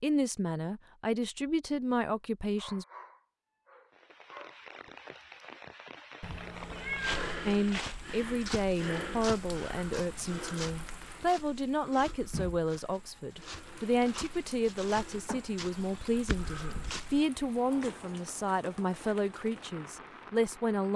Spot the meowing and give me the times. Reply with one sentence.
The meowing can be heard from 6.2 to 7.7 s.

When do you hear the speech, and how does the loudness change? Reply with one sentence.
You can hear the speech briefly from 0.0 to 2.9 s; and from 7.5 to 20.9 s, at a steady volume.